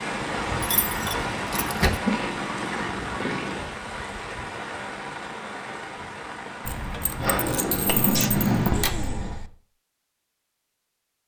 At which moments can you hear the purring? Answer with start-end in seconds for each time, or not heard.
0.0-3.8, 7.2-9.4.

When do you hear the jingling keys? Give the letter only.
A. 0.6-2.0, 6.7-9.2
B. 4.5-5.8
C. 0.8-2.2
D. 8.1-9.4
A.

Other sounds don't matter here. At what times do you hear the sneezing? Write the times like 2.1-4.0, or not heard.
8.1-9.4.